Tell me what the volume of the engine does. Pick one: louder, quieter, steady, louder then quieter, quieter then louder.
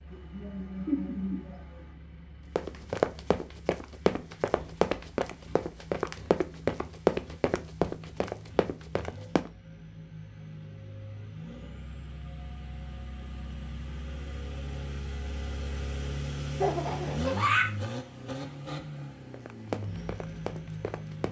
louder.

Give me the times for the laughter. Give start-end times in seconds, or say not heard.
0.1-1.9, 16.6-17.7.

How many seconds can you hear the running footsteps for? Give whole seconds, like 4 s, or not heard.
9 s.